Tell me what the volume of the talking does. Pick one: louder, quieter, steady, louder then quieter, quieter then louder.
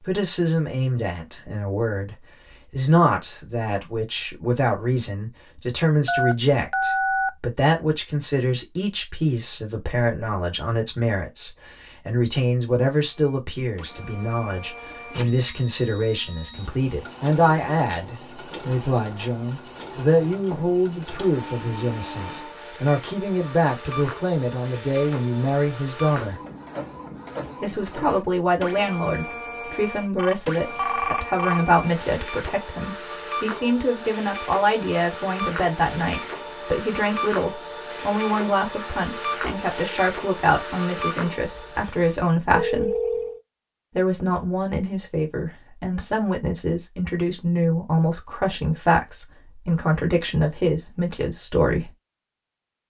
steady.